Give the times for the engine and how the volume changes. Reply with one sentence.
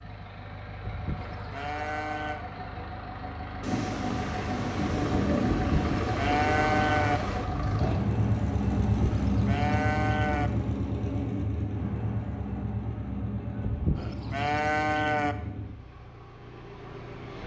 The engine can be heard from 0.0 to 17.4 s, getting louder then quieter.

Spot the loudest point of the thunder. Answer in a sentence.
The volume of the thunder peaks at 5 seconds.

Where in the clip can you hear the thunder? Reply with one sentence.
The thunder can be heard from 3.6 to 7.5 s.